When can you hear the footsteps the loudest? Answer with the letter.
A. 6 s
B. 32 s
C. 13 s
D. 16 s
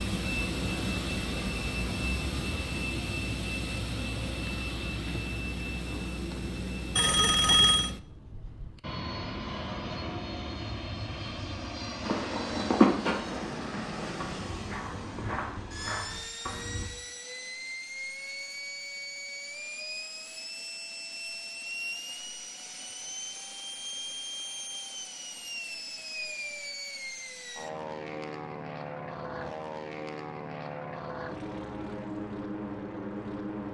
C.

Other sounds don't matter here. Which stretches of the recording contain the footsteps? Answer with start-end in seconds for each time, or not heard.
12.0-16.9.